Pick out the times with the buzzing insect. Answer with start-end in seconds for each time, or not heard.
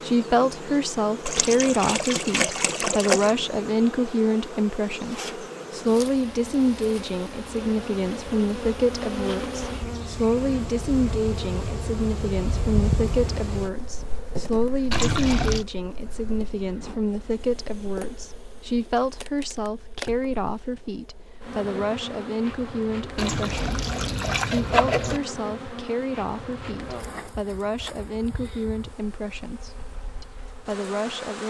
0.0-31.4.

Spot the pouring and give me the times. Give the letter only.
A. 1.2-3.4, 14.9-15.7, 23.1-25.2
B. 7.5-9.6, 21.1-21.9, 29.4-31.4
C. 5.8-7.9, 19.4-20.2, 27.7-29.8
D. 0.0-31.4
A.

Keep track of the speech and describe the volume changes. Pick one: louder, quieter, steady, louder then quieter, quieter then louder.
quieter.